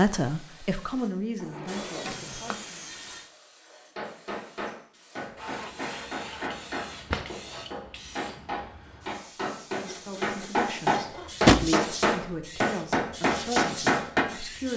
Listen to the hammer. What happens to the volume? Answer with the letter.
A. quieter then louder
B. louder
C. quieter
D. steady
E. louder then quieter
B.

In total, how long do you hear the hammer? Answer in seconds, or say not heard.
10 s.